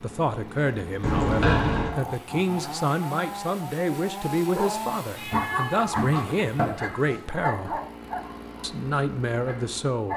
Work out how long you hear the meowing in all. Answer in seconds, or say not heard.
3 s.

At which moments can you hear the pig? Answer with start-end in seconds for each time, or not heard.
not heard.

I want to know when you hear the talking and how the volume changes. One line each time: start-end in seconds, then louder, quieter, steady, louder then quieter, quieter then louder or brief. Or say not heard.
0.0-7.8 steady
8.6-10.1 brief.